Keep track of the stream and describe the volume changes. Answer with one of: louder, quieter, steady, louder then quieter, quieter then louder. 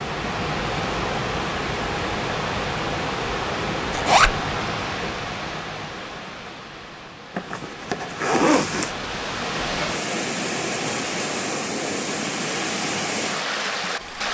quieter then louder.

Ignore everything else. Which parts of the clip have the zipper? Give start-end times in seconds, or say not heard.
3.9-4.3, 7.3-8.9.